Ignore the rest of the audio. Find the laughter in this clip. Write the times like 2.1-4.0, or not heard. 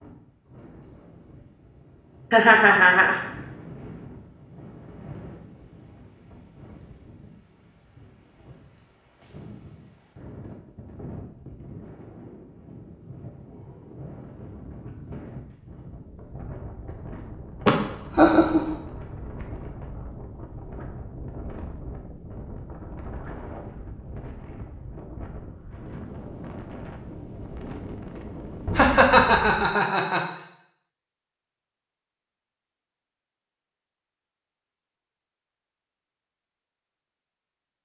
2.3-3.2, 17.6-18.7, 28.8-30.2.